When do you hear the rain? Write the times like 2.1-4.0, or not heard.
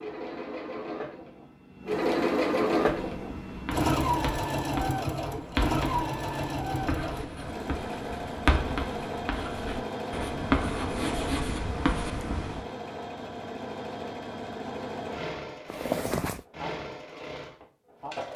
not heard.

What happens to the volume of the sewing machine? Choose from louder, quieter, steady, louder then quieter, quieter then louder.
quieter.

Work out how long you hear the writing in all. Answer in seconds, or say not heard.
10 s.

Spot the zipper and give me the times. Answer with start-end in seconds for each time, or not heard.
15.7-16.4.